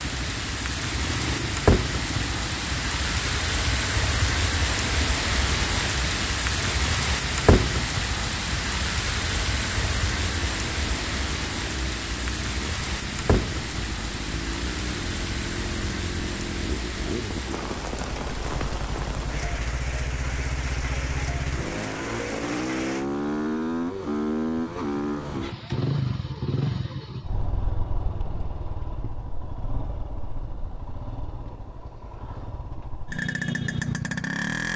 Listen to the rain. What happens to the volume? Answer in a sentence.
The loudness of the rain goes down.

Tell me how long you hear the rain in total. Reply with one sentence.
The rain can be heard for 23 seconds in total.